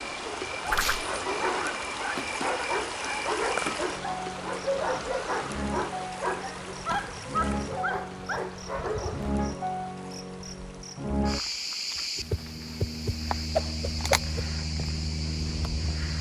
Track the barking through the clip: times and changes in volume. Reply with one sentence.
The barking can be heard from 0.2 to 9.3 s, at a steady volume.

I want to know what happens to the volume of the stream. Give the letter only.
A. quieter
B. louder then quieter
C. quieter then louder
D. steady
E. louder
A.